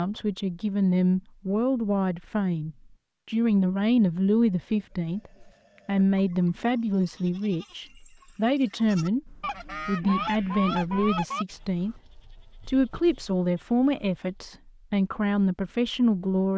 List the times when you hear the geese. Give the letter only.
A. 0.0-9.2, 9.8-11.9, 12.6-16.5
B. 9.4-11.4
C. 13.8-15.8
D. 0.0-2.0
B.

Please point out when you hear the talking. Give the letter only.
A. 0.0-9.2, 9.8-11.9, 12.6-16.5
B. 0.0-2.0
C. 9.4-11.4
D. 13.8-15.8
A.